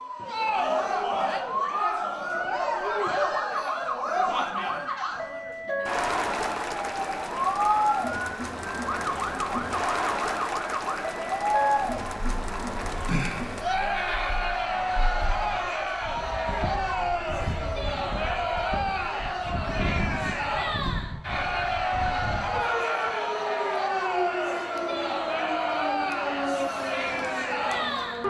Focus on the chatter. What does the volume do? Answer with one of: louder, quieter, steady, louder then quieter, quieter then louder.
steady.